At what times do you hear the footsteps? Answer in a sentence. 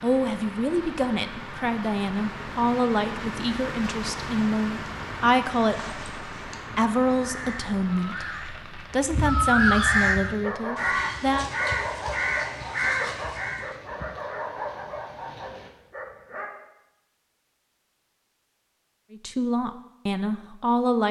You can't hear the footsteps here.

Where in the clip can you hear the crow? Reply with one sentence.
You can hear the crow from 5.6 to 13.7 s.